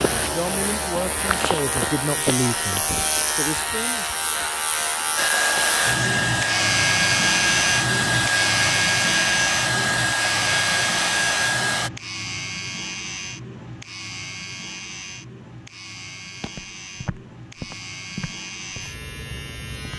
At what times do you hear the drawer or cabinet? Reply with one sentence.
You can't hear the drawer or cabinet here.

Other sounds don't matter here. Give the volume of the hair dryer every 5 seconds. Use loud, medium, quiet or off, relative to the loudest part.
off, loud, loud, off.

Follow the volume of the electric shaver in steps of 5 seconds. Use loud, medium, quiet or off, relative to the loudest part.
loud, loud, medium, quiet.